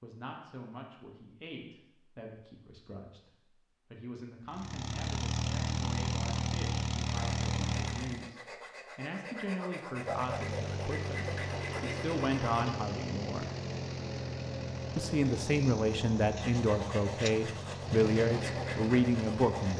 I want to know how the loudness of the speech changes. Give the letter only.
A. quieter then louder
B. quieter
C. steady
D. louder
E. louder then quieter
D.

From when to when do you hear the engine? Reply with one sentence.
You can hear the engine from 4.5 to 8.3 s and from 9.9 to 19.7 s.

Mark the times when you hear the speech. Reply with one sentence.
You can hear the speech from 0.0 to 13.5 s and from 14.9 to 19.7 s.